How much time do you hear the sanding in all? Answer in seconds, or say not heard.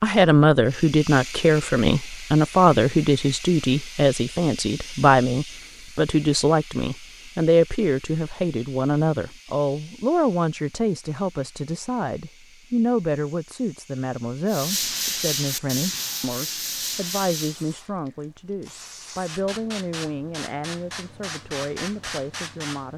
3 s.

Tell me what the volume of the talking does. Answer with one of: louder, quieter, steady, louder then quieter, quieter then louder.
quieter.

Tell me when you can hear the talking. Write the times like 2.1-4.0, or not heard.
0.0-22.9.